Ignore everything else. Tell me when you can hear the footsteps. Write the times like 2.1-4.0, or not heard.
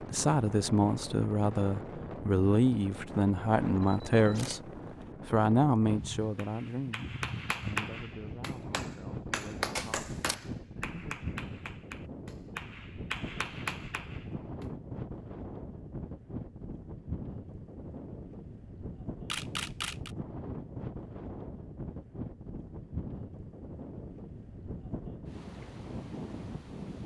not heard.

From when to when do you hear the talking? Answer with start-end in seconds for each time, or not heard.
0.0-11.2.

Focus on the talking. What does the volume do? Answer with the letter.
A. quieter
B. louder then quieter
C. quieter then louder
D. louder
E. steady
A.